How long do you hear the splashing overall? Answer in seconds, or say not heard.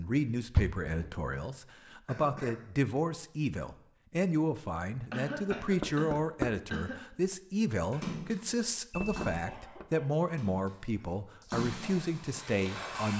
5 s.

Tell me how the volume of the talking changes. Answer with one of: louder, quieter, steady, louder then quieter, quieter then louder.
steady.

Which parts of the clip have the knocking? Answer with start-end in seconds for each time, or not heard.
0.6-1.2, 5.5-6.6, 8.9-9.8.